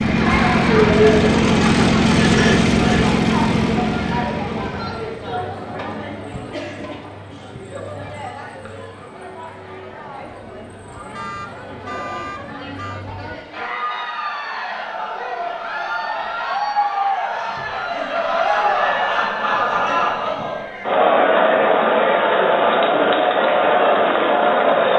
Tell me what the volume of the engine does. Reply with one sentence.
The volume of the engine goes down.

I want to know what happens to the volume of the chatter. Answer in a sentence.
The loudness of the chatter goes down, then up.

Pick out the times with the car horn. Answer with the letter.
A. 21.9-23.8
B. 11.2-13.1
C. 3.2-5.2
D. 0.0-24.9
B.